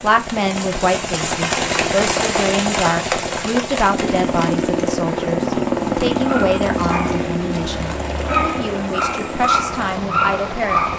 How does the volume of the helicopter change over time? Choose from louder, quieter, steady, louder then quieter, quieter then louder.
louder then quieter.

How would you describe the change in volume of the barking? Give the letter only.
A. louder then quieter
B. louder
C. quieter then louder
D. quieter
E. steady
C.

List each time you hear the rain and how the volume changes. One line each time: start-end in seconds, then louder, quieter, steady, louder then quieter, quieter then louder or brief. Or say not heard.
0.0-10.9 quieter.